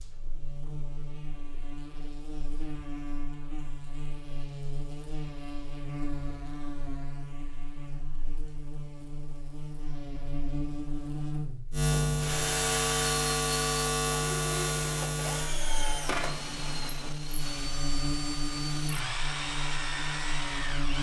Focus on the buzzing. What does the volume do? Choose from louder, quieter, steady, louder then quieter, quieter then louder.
louder then quieter.